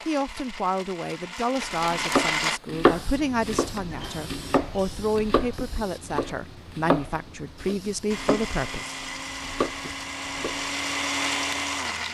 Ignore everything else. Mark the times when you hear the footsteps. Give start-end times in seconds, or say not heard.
not heard.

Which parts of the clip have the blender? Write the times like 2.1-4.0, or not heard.
0.0-2.6, 8.1-12.0.